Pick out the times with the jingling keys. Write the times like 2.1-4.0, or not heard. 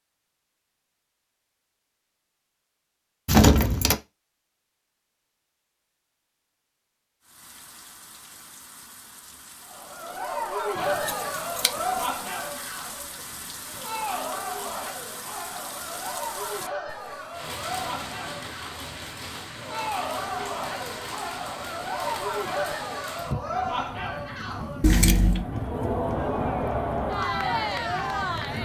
3.2-4.0, 10.8-12.1, 24.8-25.4.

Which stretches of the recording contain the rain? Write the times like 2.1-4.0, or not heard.
7.2-28.6.